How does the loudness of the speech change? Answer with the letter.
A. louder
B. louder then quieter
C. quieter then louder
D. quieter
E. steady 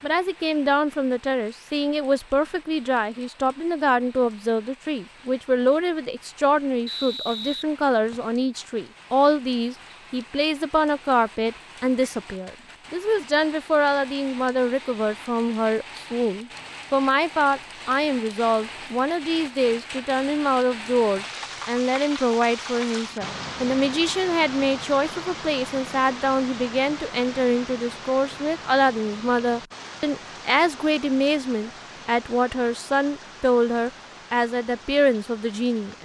E.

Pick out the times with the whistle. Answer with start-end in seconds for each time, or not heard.
6.8-8.3.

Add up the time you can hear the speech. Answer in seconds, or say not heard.
36 s.